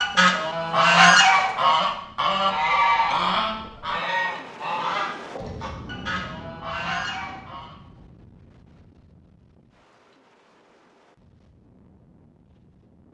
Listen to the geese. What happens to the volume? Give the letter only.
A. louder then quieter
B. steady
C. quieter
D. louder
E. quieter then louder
C.